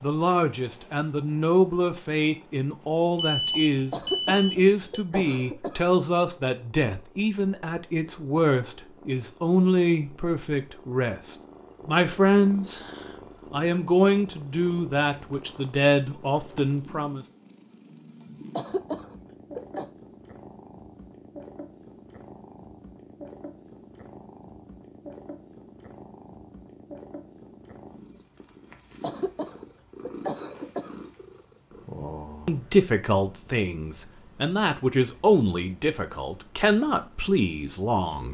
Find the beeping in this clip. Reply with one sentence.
You can hear the beeping from 3.1 to 5.0 s.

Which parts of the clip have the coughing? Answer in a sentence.
You can hear the coughing from 3.9 to 5.8 s, from 18.6 to 19.9 s and from 29.0 to 30.9 s.